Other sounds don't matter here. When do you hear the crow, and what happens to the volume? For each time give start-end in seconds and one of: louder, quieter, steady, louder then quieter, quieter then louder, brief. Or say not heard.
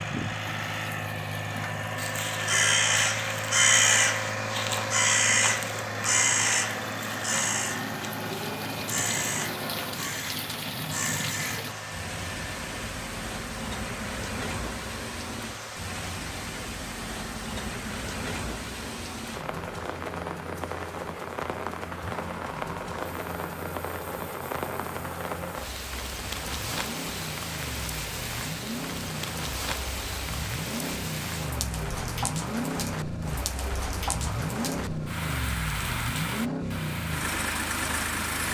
1.4-11.7 quieter.